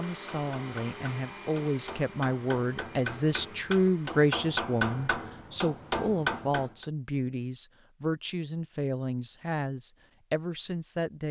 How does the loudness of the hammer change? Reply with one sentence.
The volume of the hammer goes up.